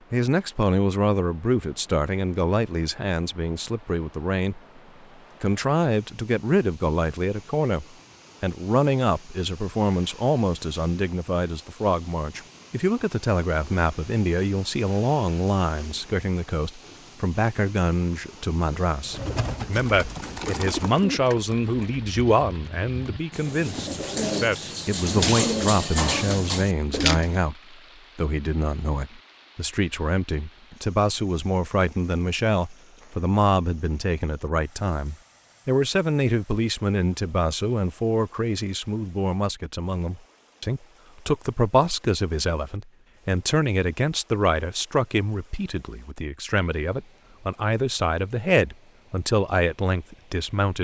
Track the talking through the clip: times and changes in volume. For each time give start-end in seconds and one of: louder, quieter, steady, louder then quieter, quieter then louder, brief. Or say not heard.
0.1-4.6 quieter
5.4-50.7 steady.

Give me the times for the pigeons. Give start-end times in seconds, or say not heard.
19.1-27.4.